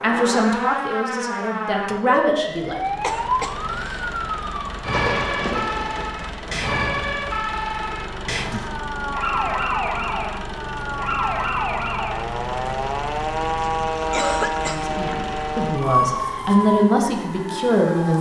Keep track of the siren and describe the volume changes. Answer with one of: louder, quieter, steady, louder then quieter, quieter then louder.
steady.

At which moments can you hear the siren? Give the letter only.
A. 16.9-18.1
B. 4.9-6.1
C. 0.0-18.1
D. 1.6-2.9
C.